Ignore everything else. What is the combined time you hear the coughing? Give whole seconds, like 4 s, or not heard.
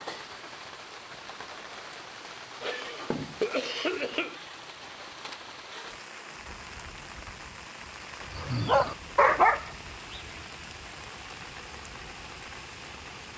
2 s.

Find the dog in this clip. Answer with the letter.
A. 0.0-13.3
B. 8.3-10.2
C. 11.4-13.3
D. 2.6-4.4
B.